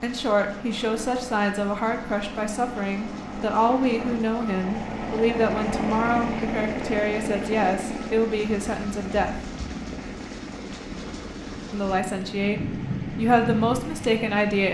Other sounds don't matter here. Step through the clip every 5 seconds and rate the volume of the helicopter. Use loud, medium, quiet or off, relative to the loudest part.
medium, loud, medium.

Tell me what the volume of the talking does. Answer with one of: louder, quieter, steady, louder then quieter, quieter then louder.
steady.